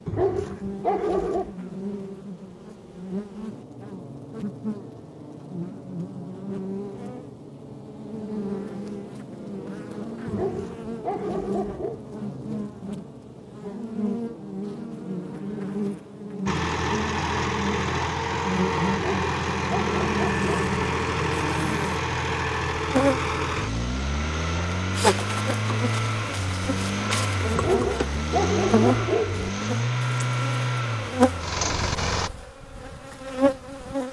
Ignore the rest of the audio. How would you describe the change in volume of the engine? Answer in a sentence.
The volume of the engine stays about the same.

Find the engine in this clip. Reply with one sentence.
The engine can be heard from 16.4 to 32.3 s.